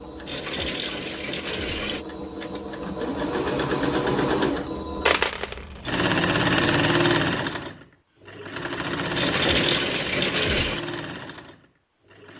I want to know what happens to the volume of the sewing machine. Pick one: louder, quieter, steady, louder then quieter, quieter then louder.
louder then quieter.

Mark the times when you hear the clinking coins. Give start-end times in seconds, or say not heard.
0.2-2.0, 5.0-5.7, 9.2-10.8.